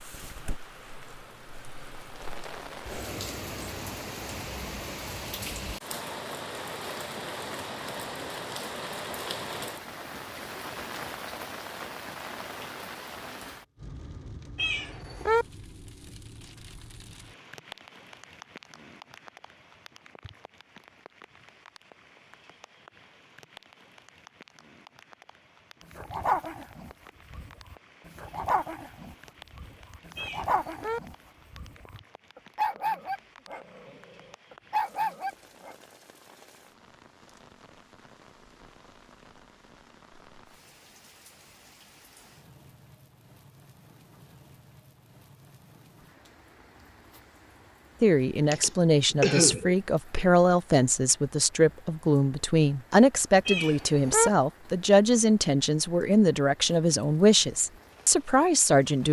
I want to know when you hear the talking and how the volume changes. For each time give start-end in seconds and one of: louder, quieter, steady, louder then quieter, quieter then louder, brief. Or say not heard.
48.0-59.0 steady.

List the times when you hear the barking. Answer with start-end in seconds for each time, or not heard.
25.9-35.8.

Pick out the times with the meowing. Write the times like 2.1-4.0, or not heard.
14.6-15.4, 30.1-31.0, 53.5-54.3.